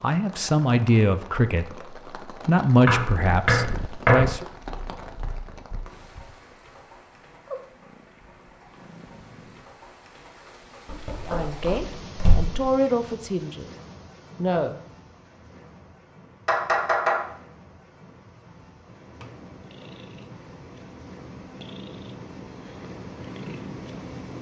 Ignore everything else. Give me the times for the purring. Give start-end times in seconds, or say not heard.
3.1-9.7, 18.9-24.3.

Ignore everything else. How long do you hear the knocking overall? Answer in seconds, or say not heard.
4 s.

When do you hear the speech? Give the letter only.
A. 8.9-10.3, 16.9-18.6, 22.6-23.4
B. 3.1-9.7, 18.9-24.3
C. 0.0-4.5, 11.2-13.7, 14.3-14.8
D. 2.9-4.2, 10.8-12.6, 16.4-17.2
C.